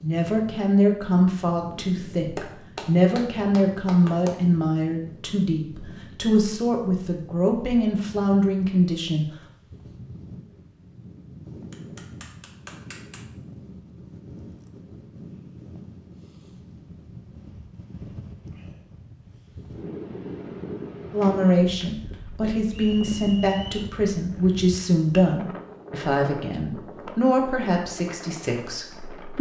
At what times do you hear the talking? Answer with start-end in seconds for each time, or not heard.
0.0-9.2, 21.1-29.3.